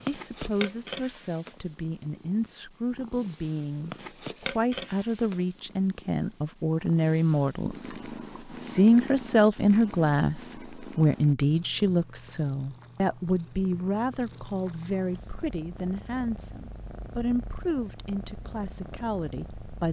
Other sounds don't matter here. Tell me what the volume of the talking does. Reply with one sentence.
The volume of the talking goes up, then down.